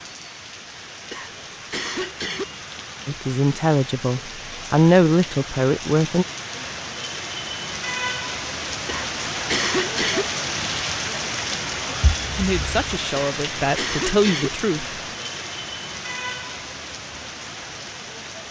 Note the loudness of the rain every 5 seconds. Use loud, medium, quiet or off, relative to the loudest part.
medium, loud, loud, medium.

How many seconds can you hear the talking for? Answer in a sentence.
The talking can be heard for 6 seconds in total.